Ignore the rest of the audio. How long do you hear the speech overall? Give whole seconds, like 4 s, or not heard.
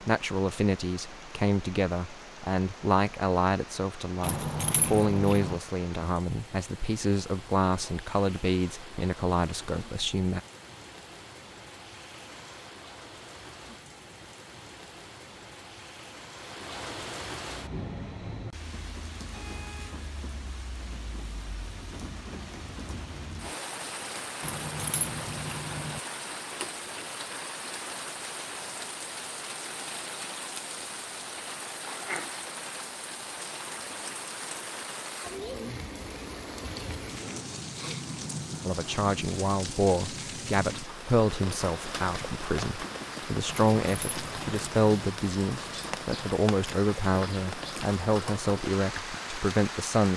22 s.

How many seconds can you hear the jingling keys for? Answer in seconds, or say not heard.
4 s.